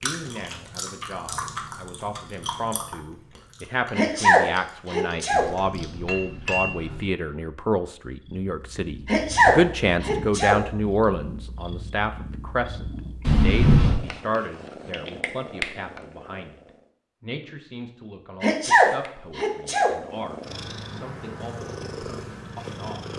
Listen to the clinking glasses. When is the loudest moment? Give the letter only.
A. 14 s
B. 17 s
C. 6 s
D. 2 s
A.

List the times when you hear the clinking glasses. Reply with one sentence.
You can hear the clinking glasses from 5.3 to 7.1 s and from 13.2 to 14.0 s.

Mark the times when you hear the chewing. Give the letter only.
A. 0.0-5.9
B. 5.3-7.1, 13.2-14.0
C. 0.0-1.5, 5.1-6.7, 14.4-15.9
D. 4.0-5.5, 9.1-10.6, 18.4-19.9
A.